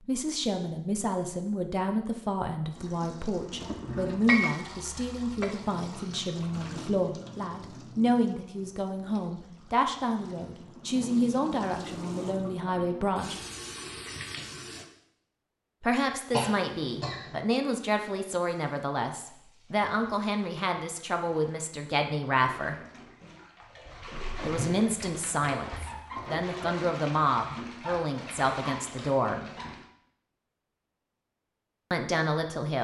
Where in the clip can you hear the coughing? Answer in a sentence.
You can hear the coughing from 16.3 to 17.4 s.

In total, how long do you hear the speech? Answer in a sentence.
The speech can be heard for 26 seconds in total.